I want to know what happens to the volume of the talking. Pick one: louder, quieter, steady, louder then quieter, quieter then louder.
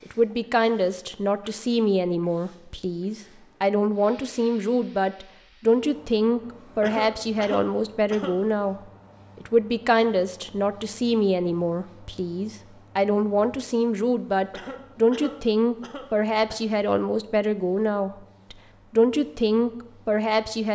steady.